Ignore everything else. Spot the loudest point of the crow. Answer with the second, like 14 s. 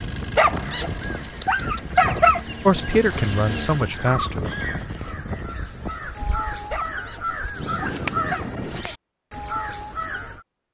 8 s.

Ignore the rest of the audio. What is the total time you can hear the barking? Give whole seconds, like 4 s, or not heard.
4 s.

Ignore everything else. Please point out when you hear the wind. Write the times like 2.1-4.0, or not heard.
0.0-8.8.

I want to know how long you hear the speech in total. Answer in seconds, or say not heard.
2 s.